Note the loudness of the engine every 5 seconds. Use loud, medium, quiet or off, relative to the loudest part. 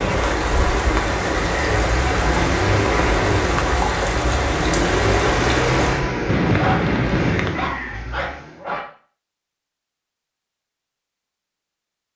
loud, loud, off.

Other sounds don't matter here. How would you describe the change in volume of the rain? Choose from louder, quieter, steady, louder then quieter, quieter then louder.
steady.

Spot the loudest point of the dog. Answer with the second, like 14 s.
7 s.